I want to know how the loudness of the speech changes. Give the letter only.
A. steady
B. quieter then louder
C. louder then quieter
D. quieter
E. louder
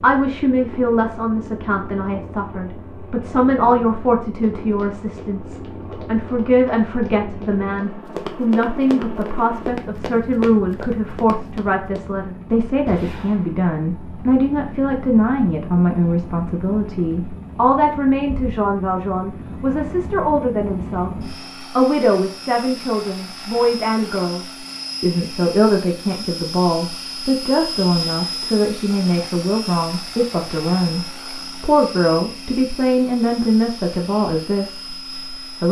A.